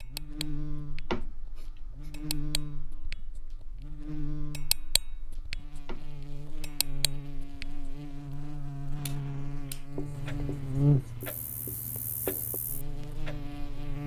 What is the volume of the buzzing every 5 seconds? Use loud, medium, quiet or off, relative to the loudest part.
medium, medium, loud.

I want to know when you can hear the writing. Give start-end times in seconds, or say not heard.
1.1-2.1, 5.8-6.9, 9.9-12.6.